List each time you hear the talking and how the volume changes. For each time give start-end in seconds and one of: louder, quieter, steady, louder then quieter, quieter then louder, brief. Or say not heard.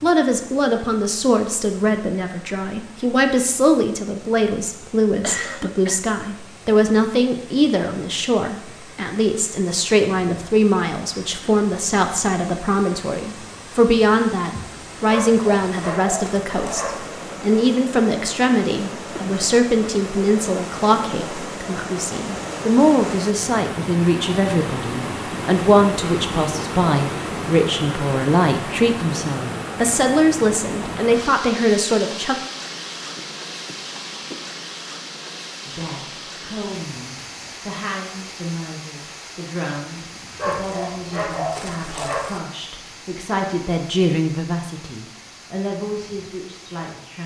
0.0-32.4 steady
35.6-47.2 louder then quieter.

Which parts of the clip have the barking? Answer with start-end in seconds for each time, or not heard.
15.1-17.1, 40.4-42.4.